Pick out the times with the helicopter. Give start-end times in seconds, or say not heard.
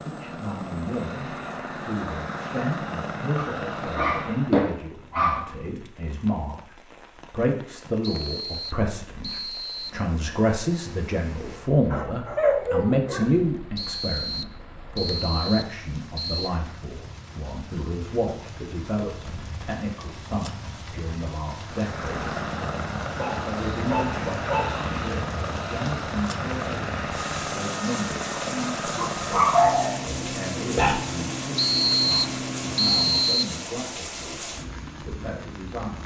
0.0-4.7, 21.6-33.5.